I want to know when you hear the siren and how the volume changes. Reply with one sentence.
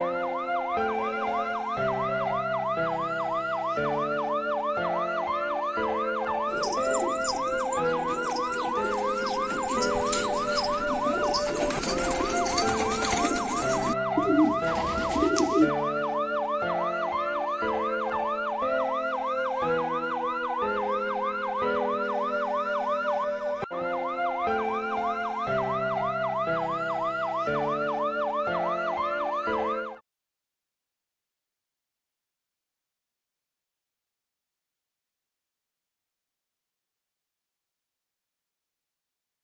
The siren can be heard from 0.0 to 30.0 s, at a steady volume.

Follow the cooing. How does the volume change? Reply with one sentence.
The volume of the cooing goes up.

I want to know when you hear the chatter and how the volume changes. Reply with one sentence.
The chatter can't be heard in this clip.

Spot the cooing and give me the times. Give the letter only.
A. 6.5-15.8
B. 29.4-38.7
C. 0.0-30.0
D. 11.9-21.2
A.